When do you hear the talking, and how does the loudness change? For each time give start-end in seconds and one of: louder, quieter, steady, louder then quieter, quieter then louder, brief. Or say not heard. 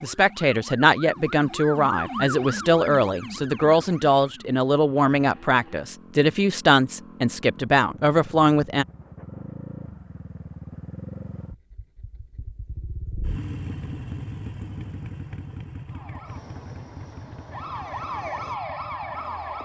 0.0-8.8 steady.